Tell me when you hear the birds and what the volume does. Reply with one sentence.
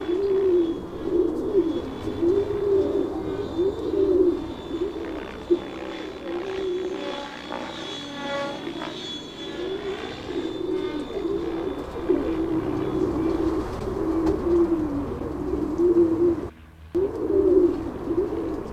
You can hear the birds from 0.0 to 18.6 s, getting quieter then louder.